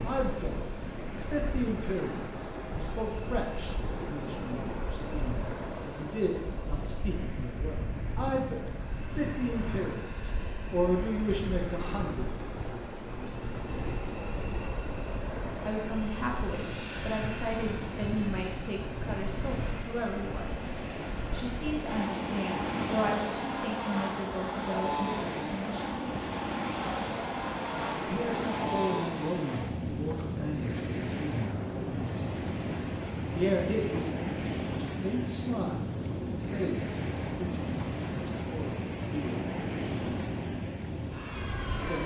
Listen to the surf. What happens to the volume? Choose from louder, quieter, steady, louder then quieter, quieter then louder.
steady.